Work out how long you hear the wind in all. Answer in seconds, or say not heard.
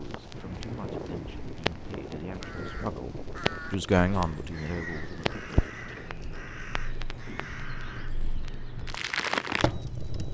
10 s.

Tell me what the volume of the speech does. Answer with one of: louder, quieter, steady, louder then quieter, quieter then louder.
louder then quieter.